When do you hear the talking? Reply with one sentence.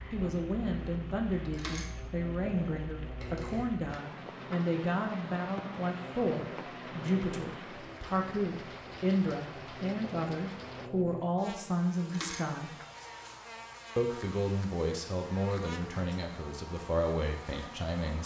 The talking can be heard from 0.1 to 12.8 s and from 13.9 to 18.2 s.